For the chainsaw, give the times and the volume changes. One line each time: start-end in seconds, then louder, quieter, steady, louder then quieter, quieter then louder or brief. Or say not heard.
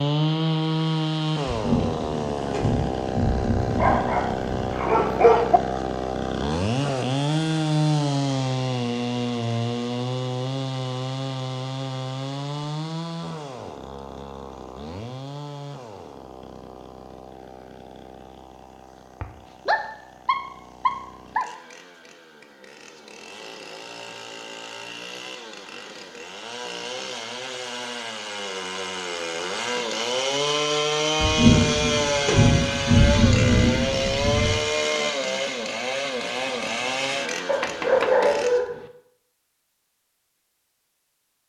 0.0-38.6 quieter then louder.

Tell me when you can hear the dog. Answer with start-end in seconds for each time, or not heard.
3.6-5.6, 19.2-21.4, 37.5-38.9.